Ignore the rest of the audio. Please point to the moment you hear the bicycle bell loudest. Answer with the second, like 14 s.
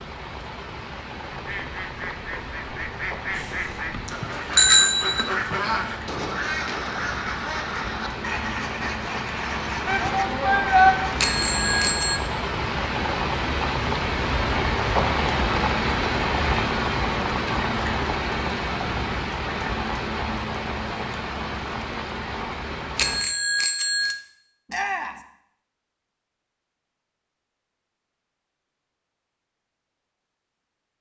5 s.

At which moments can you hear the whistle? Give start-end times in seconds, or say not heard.
not heard.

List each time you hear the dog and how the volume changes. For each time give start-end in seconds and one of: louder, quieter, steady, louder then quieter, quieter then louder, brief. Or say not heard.
not heard.